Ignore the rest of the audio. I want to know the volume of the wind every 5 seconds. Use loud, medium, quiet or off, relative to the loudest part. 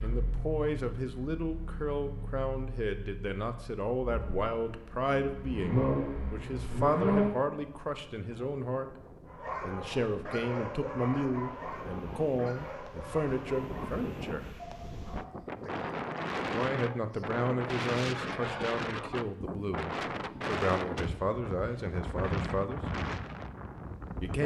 off, quiet, medium, loud, loud.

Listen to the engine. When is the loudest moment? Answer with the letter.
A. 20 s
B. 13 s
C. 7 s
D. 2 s
C.